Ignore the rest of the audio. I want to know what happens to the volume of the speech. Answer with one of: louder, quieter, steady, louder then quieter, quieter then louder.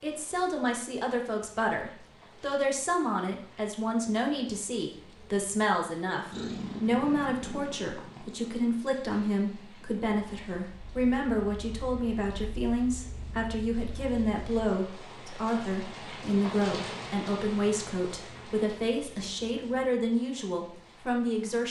steady.